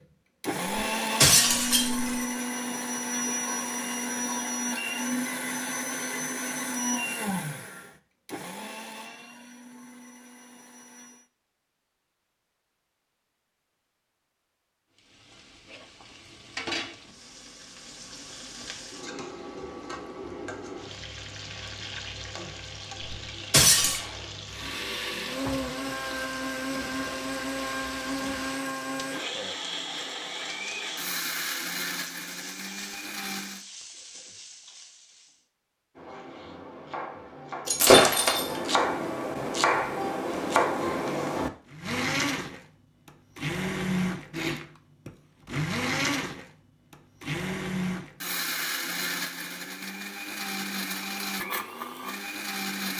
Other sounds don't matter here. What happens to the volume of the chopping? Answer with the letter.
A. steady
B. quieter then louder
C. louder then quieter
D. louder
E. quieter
D.